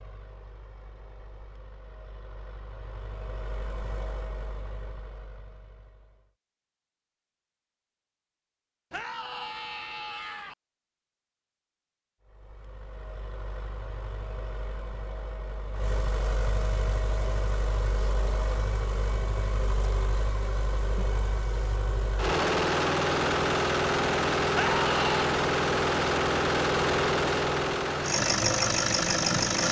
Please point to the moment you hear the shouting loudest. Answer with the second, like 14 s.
25 s.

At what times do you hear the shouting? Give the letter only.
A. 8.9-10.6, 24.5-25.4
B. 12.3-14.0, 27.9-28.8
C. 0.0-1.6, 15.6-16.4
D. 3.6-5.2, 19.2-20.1
A.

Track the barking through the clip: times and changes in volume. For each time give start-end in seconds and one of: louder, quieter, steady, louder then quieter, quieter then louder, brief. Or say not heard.
not heard.